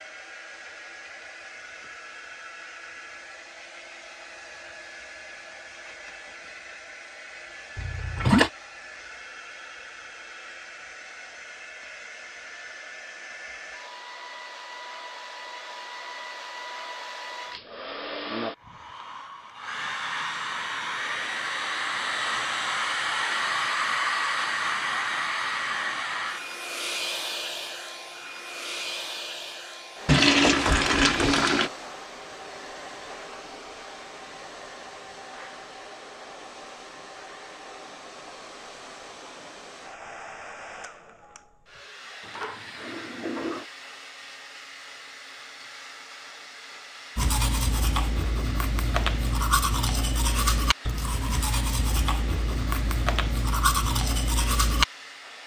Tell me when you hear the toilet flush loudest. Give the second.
31 s.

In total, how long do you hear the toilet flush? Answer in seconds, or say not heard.
4 s.